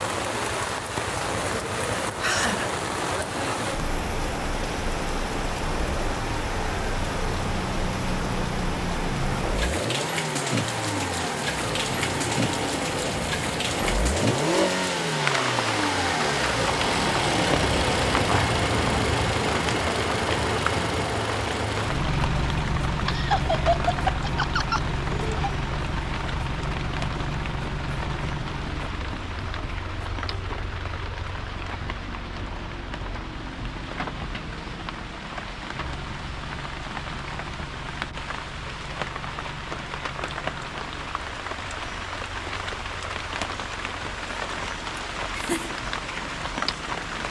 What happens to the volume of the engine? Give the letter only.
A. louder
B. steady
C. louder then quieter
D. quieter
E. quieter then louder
C.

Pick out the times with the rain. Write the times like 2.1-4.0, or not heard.
0.0-47.2.